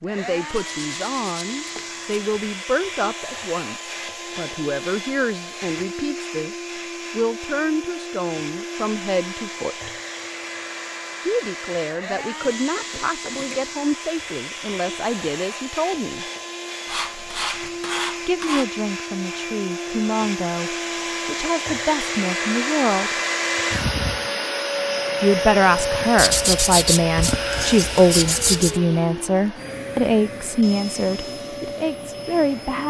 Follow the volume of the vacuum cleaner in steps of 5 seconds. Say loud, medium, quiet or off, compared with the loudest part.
medium, medium, medium, medium, loud, loud, medium.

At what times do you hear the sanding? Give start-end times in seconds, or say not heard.
0.5-2.2, 12.2-13.7, 16.9-18.6, 26.1-28.8.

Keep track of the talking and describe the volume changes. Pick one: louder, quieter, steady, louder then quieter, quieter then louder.
louder.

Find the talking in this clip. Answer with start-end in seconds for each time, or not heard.
0.0-9.9, 11.2-16.2, 18.2-23.1, 25.2-32.8.